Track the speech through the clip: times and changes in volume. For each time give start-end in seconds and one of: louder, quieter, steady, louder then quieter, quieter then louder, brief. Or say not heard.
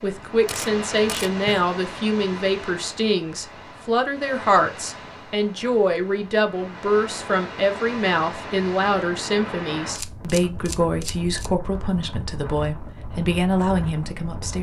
0.0-14.5 steady.